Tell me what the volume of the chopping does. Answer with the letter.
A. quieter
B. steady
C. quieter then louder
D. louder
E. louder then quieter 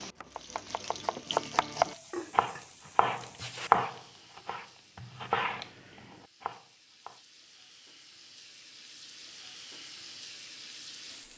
E.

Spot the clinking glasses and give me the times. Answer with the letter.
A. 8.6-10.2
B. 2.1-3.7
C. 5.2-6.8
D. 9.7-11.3
B.